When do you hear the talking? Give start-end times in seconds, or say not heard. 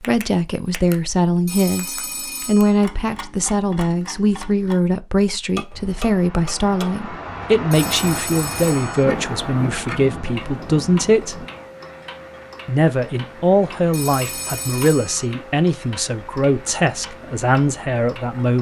0.1-11.4, 12.7-18.5.